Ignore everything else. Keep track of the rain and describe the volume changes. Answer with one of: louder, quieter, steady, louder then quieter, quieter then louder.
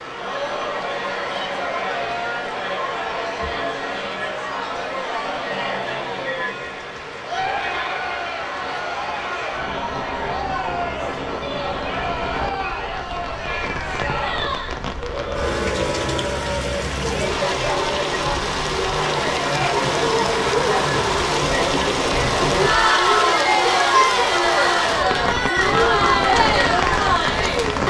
louder.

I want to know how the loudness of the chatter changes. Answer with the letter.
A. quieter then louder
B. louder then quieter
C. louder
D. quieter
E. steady
C.